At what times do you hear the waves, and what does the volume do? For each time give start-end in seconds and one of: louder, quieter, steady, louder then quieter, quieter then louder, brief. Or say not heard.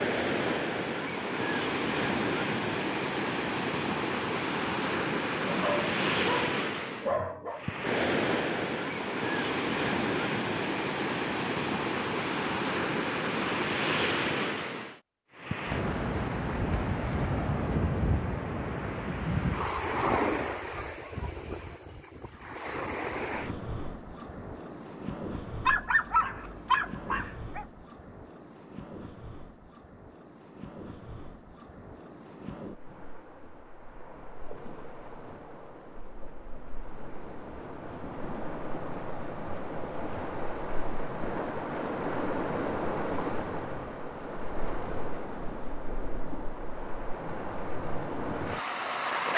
0.0-49.3 quieter then louder.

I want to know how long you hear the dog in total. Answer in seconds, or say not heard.
4 s.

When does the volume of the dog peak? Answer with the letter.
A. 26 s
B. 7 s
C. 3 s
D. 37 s
A.